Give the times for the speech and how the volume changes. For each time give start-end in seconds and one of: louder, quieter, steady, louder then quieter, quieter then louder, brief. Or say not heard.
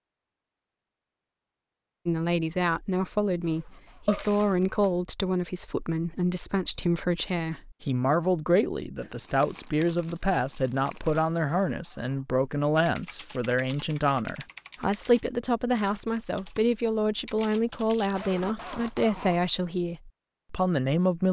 2.0-21.2 steady.